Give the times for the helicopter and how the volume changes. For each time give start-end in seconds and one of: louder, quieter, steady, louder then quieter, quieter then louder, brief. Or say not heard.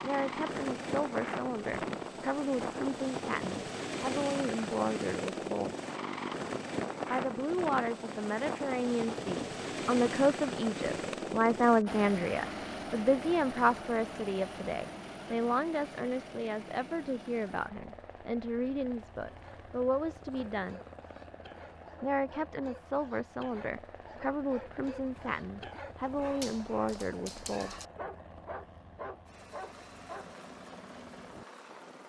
0.0-32.0 quieter.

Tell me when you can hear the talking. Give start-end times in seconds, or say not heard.
0.0-5.8, 7.1-20.8, 22.0-27.8.